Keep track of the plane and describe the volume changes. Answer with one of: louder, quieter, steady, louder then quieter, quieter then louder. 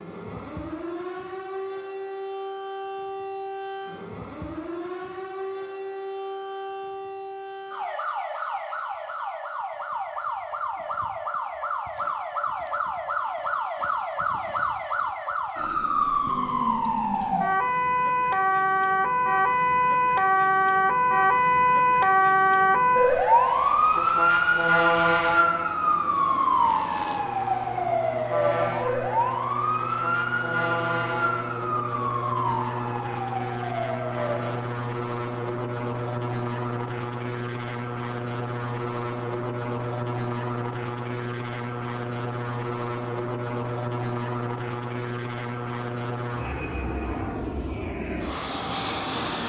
louder.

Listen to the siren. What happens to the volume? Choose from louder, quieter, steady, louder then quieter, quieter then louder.
louder then quieter.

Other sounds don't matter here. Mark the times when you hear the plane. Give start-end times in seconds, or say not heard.
23.4-49.4.